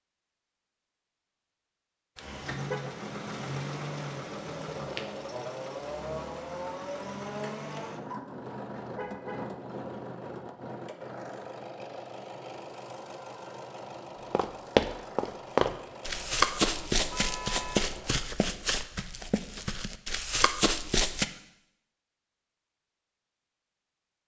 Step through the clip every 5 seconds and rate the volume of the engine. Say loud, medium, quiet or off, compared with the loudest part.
loud, loud, medium, medium, off.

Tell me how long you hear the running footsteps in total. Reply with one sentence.
You can hear the running footsteps for 7 seconds altogether.